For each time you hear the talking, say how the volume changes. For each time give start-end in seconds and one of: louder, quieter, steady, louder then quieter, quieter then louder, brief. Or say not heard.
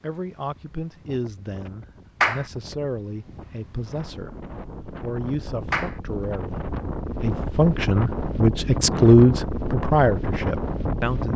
0.0-11.3 louder.